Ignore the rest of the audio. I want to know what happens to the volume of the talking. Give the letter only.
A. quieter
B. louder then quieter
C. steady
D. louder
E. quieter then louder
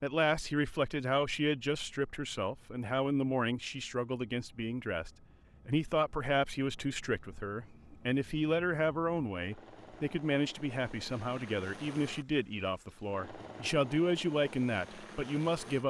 C.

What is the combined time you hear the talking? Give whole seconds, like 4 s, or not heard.
16 s.